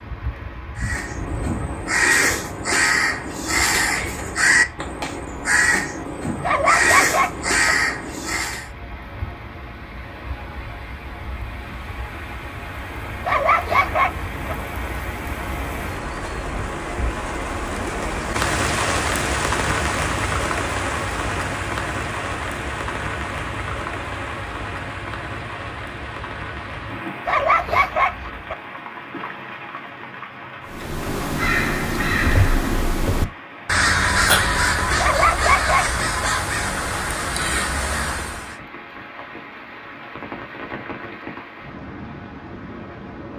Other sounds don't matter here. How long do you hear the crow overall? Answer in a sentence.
You can hear the crow for 16 seconds altogether.